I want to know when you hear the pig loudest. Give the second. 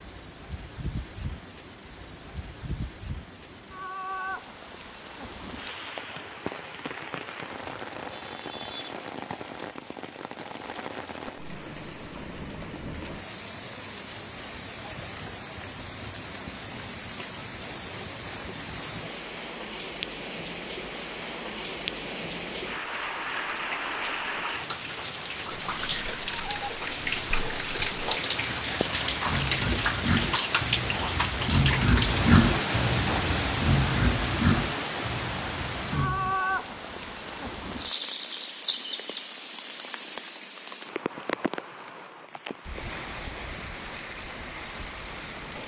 32 s.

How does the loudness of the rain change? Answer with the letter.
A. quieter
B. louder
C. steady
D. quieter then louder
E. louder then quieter
E.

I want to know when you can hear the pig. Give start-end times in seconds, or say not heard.
25.5-36.4.